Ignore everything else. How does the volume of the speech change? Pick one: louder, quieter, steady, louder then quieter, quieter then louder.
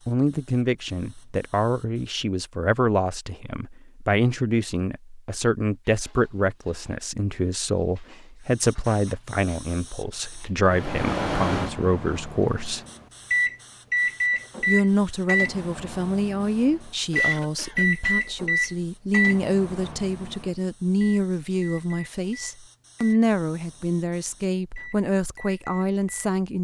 steady.